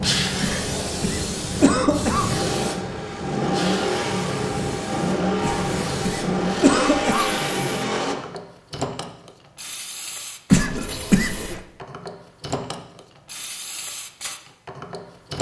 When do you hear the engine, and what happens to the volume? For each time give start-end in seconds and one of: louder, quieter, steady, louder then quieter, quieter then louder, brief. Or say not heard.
0.0-8.2 louder.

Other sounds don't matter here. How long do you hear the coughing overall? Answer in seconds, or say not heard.
5 s.